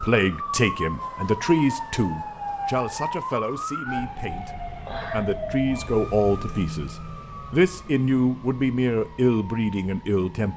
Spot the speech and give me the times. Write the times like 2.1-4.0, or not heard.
0.0-10.5.